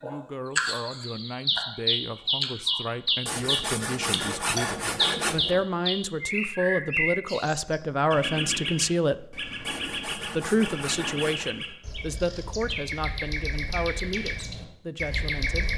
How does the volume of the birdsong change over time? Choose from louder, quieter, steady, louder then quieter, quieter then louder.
quieter.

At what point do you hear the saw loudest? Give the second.
5 s.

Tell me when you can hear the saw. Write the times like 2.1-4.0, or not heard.
3.2-5.7, 9.6-11.5.